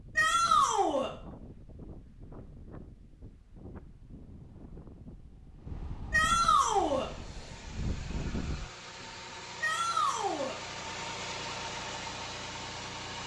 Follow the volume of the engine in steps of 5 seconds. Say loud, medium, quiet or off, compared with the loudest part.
off, medium, loud.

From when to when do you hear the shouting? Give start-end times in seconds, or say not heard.
0.1-1.1, 6.1-7.1, 9.6-10.6.